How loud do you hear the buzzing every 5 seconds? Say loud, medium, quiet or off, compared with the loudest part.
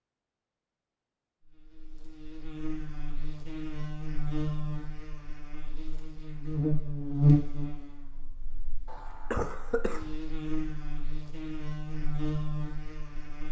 medium, loud, medium.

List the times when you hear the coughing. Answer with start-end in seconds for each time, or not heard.
8.8-10.2.